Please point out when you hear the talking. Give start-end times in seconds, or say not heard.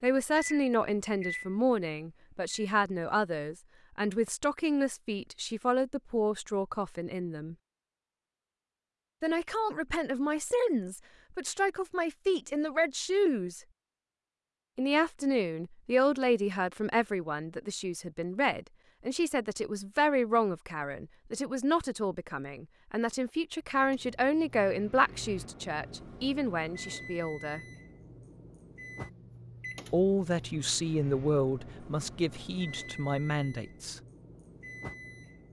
0.0-7.5, 9.2-13.6, 14.8-27.6, 29.9-34.0.